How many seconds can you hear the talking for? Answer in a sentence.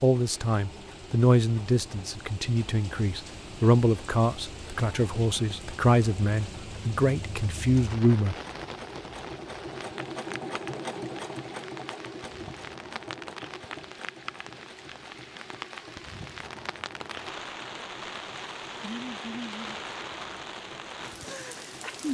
The talking can be heard for 8 seconds in total.